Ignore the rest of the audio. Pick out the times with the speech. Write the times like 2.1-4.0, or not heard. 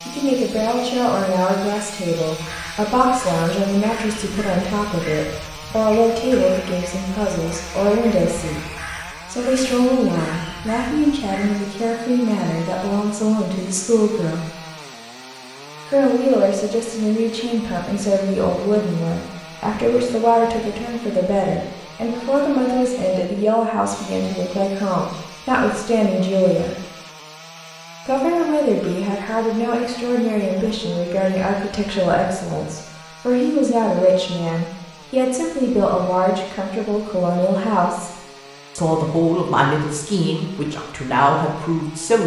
0.1-8.6, 9.3-14.4, 15.8-26.8, 28.1-38.1, 38.8-42.2.